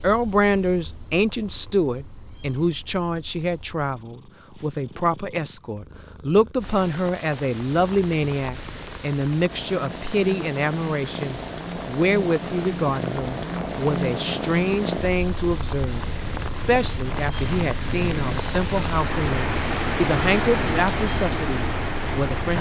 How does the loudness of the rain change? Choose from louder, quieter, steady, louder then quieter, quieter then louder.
louder.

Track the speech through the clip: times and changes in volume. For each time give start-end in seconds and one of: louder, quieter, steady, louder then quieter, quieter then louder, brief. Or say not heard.
0.0-22.5 steady.